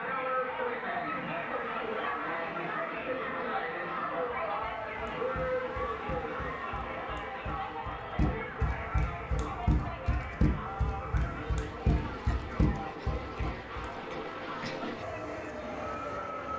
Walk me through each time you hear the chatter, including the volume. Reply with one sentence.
You can hear the chatter from 0.0 to 16.5 s, getting quieter.